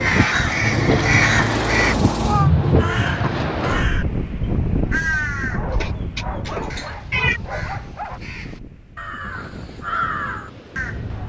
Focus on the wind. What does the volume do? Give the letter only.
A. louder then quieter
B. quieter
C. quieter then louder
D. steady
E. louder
B.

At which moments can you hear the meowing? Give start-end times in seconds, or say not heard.
0.6-2.5, 5.7-7.4.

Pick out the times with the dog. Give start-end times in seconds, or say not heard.
5.5-8.2.